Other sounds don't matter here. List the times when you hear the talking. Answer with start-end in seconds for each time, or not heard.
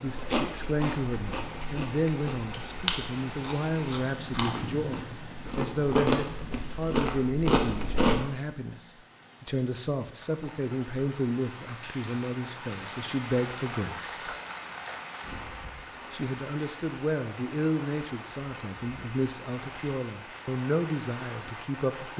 0.0-14.3, 16.1-22.1.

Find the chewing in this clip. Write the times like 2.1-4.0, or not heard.
0.1-8.2.